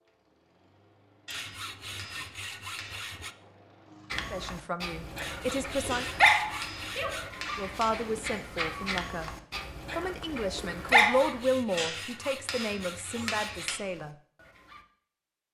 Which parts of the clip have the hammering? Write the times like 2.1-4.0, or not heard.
1.2-3.0, 5.9-7.9, 11.8-13.8.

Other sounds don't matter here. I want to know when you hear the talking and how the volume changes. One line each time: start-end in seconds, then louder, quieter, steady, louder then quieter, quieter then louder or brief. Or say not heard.
4.3-6.0 brief
7.5-9.3 brief
9.9-14.2 louder then quieter.